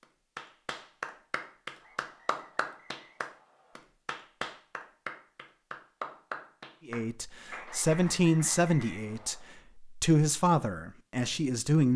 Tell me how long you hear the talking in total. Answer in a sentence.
You can hear the talking for 5 seconds altogether.